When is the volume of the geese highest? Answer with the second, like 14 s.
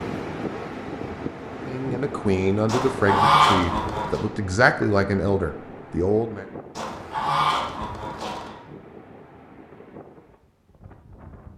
3 s.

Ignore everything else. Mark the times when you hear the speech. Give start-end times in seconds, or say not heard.
1.6-6.5.